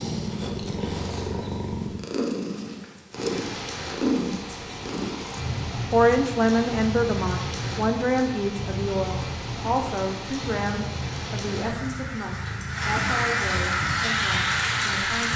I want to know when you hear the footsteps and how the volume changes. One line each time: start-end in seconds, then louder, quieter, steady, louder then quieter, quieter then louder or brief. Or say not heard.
not heard.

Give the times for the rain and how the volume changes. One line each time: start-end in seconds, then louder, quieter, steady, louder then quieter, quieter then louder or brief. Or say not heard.
3.1-15.3 louder.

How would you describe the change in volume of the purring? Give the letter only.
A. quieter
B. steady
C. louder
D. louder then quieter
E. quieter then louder
A.